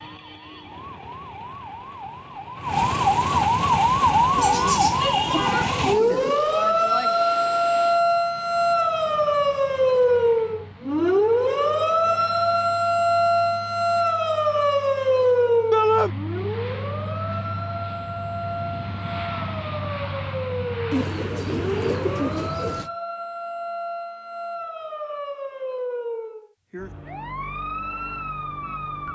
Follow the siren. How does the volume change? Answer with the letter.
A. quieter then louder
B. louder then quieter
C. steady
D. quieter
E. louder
D.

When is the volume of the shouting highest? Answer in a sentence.
The loudest moment of the shouting is at 16 seconds.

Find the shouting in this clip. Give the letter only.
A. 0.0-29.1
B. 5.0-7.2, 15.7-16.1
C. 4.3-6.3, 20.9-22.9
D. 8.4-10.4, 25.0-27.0
B.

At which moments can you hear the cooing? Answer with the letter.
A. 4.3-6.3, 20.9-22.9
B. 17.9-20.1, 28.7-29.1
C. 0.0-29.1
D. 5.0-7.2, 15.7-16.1
A.